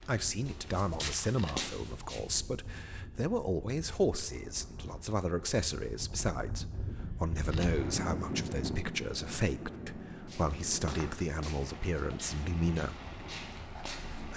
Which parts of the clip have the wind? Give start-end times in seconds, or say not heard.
0.0-14.3.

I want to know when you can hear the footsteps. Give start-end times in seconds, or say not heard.
0.0-2.2, 10.2-14.3.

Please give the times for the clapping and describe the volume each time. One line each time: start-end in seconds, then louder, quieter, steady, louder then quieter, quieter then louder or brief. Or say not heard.
not heard.